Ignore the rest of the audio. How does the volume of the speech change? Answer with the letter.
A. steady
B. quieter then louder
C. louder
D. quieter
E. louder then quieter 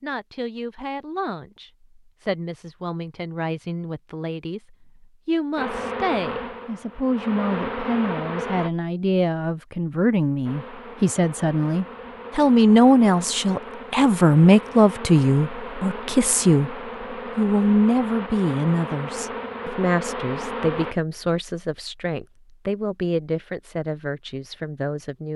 E.